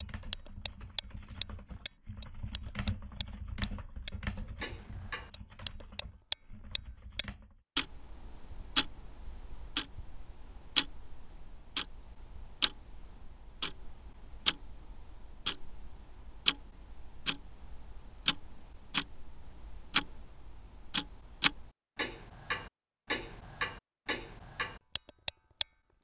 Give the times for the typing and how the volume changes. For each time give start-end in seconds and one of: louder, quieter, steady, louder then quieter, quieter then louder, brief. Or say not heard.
0.0-7.6 louder then quieter.